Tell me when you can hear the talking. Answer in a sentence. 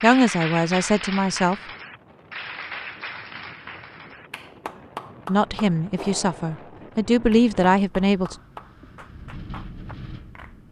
The talking can be heard from 0.0 to 1.6 s and from 5.2 to 8.3 s.